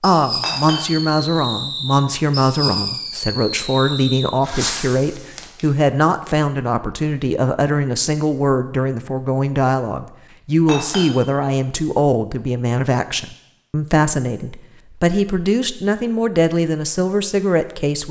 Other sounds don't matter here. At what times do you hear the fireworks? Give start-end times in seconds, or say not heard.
0.0-6.0.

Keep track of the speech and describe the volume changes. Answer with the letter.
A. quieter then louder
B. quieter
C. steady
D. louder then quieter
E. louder
C.